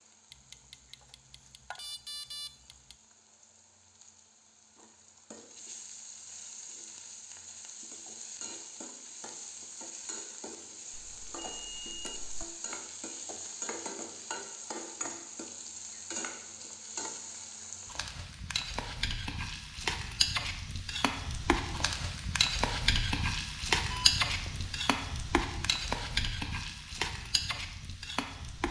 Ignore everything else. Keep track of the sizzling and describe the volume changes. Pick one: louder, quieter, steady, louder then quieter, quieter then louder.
louder.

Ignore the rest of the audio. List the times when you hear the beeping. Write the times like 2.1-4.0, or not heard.
0.3-3.0, 10.9-12.4, 23.9-24.9.